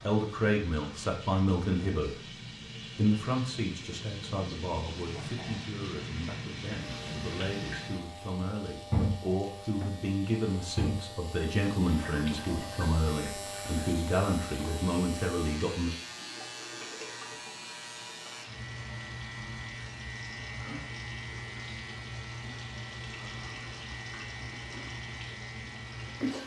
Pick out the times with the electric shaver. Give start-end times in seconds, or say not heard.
6.8-26.4.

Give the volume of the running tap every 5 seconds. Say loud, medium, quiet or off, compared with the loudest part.
medium, loud, loud, medium, medium, loud.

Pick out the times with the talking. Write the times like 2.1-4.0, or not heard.
0.1-2.3, 3.0-15.9.